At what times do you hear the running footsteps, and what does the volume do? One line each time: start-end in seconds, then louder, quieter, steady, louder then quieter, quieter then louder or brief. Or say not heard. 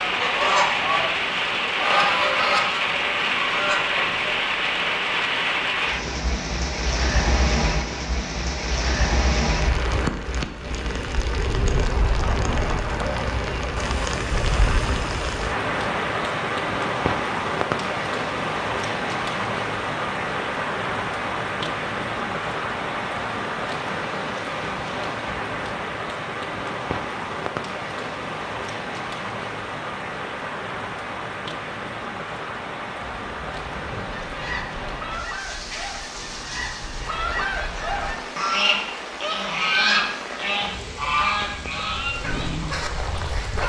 not heard.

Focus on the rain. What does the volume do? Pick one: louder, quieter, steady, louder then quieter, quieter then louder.
quieter.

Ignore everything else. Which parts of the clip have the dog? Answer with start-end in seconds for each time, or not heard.
42.0-43.6.